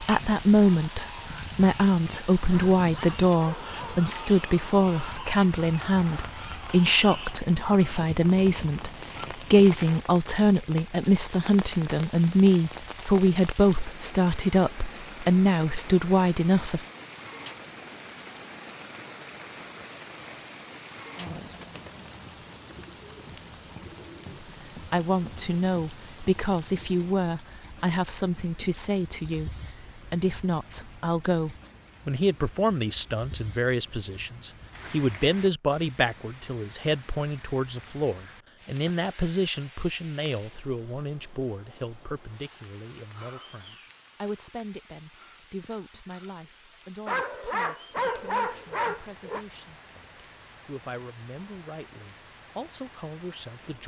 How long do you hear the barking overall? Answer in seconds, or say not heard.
4 s.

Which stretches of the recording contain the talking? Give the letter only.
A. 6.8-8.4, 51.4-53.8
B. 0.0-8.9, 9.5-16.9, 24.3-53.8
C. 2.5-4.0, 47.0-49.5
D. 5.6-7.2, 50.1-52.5
B.